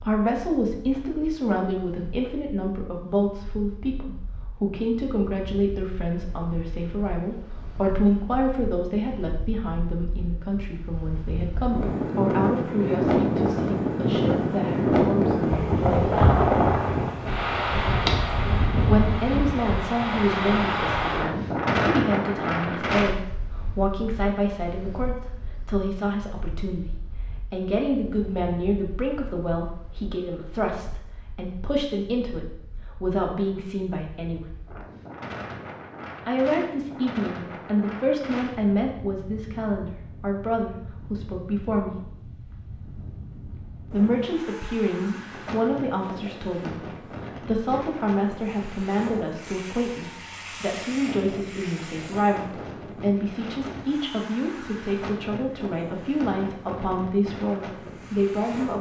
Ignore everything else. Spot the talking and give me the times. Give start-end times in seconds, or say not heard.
0.0-16.3, 18.9-34.4, 36.2-42.0, 43.9-58.7.